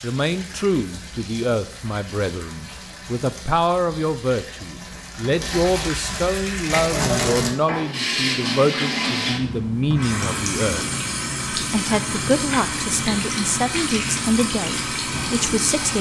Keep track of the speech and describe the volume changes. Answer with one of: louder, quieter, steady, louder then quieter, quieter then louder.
steady.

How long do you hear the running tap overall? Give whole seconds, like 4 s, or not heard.
16 s.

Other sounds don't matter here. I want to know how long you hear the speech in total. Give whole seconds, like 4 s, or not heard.
15 s.